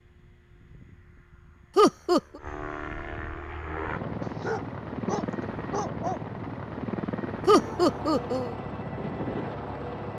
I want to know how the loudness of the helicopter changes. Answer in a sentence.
The loudness of the helicopter goes up.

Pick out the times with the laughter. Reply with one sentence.
The laughter can be heard from 1.8 to 2.2 s and from 7.5 to 8.6 s.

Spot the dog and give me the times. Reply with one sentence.
The dog can be heard from 4.2 to 6.2 s.